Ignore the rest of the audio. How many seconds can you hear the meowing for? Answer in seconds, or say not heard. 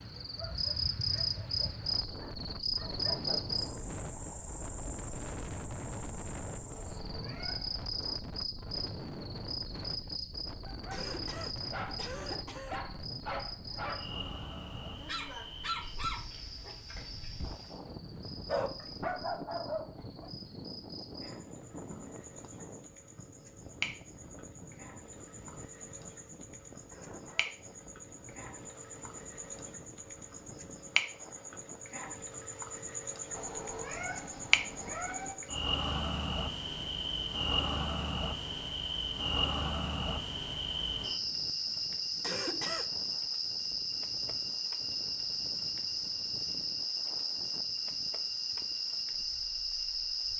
3 s.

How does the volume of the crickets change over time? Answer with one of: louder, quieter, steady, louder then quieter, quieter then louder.
quieter then louder.